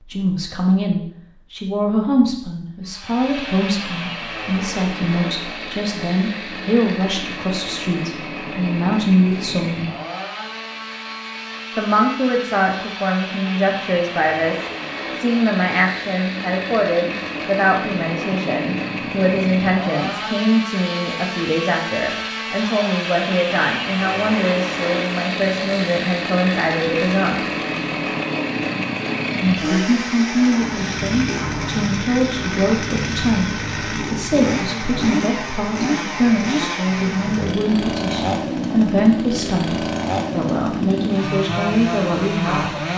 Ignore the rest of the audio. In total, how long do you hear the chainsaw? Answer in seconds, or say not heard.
40 s.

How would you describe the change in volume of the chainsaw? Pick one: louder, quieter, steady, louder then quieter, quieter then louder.
louder.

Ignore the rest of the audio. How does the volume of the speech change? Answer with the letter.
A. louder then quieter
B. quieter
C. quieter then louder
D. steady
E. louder
D.